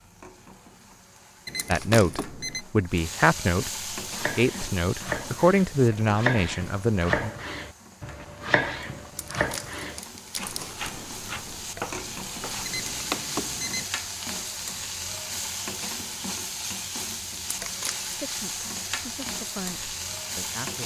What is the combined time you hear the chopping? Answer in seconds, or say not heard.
9 s.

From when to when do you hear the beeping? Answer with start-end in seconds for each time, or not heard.
1.4-2.6, 12.7-13.8.